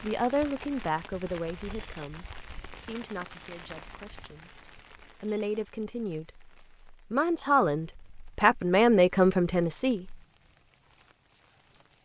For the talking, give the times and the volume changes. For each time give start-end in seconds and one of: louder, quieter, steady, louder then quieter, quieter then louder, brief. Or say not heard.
0.0-10.2 quieter then louder.